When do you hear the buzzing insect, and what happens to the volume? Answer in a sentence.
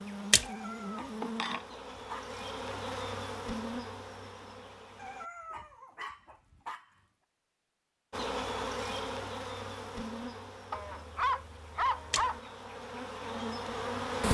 You can hear the buzzing insect from 0.0 to 5.2 s, getting quieter; and from 8.1 to 14.2 s, getting quieter then louder.